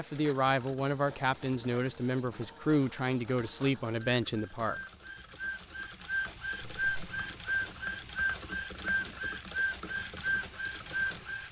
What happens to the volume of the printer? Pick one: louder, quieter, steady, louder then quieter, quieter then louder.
louder.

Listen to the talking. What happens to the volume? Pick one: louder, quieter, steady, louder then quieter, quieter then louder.
steady.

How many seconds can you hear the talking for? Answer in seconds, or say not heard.
5 s.